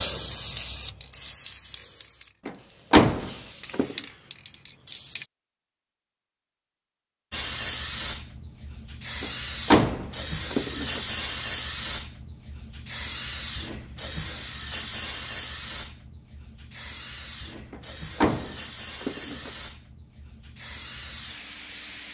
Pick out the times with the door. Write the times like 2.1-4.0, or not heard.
2.5-4.0, 9.2-11.0, 17.7-19.5.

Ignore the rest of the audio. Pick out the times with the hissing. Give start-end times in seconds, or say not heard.
0.0-5.3, 7.3-22.1.